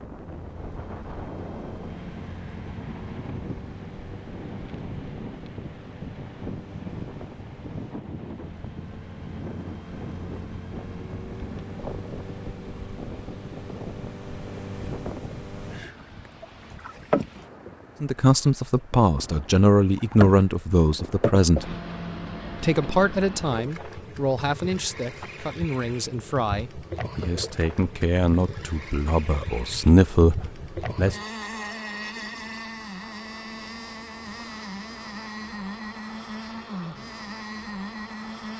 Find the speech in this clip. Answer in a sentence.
You can hear the speech from 18.0 to 21.8 s and from 22.6 to 31.1 s.